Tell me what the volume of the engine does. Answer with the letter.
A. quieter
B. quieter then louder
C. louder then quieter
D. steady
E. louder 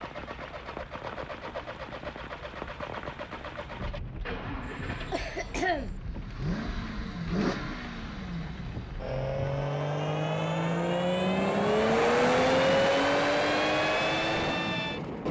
E.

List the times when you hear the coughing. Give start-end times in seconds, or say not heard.
4.6-6.0.